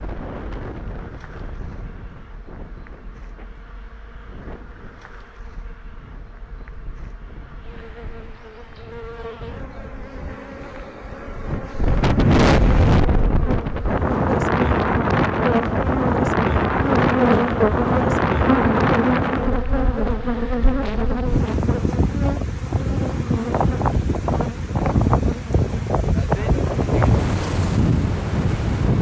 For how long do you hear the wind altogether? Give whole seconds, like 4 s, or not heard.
29 s.